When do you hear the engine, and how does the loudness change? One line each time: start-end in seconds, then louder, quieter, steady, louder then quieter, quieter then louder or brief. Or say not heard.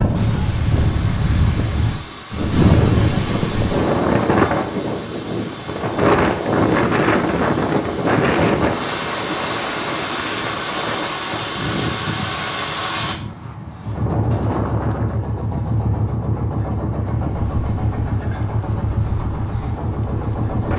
0.1-20.7 louder.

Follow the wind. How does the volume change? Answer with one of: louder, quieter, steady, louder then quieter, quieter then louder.
quieter.